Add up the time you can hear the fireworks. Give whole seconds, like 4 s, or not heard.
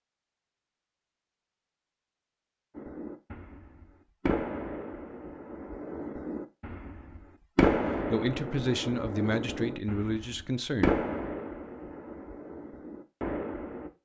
11 s.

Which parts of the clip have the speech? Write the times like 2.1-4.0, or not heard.
7.8-10.9.